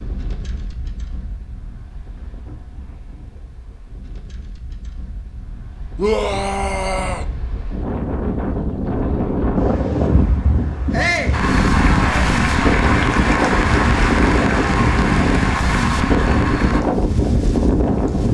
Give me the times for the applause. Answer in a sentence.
You can hear the applause from 11.3 to 16.9 s.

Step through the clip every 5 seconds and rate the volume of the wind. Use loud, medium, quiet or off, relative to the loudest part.
quiet, medium, loud, loud.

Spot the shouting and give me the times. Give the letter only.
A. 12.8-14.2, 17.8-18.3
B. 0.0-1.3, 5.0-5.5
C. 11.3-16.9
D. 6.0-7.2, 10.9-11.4
D.